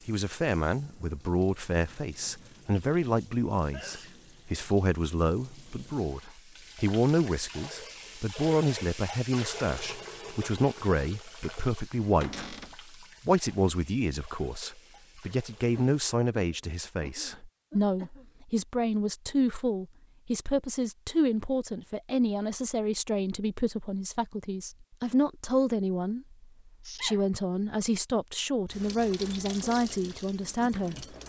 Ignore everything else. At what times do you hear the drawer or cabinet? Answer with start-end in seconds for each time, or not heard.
12.2-12.8.